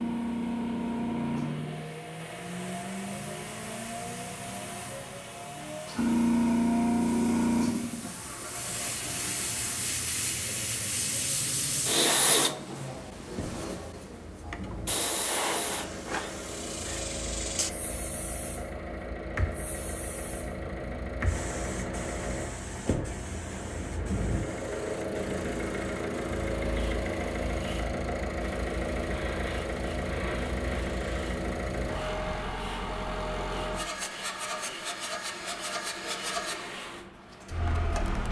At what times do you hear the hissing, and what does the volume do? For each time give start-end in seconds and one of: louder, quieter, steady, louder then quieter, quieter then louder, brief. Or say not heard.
0.0-38.2 quieter.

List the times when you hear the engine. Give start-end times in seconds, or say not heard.
0.0-38.2.